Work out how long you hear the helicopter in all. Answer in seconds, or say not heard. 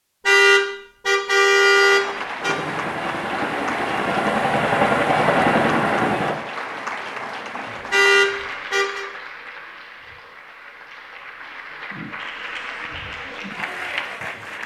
4 s.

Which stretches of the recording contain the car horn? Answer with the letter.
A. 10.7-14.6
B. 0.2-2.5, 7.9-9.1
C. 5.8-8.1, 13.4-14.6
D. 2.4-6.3
B.